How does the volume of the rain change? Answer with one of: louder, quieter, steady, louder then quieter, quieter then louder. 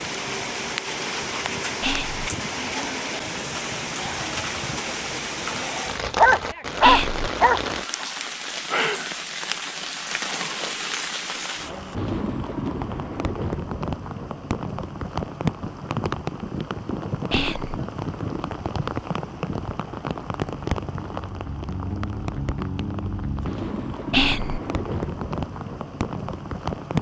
steady.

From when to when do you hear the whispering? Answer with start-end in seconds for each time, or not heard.
1.8-2.2, 6.8-7.2, 17.3-17.8, 24.1-24.6.